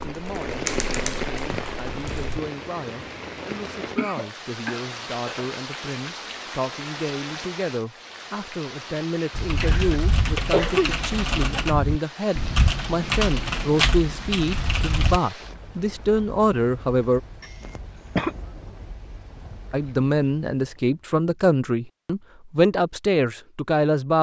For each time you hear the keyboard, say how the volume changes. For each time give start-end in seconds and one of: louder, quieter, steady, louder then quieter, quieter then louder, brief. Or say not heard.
0.0-2.4 brief
9.3-15.2 steady.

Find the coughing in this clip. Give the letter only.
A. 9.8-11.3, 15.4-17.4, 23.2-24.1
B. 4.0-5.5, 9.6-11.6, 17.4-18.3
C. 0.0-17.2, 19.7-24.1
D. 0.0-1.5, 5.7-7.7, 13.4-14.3
B.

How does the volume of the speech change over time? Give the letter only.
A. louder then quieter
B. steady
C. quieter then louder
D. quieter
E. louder
E.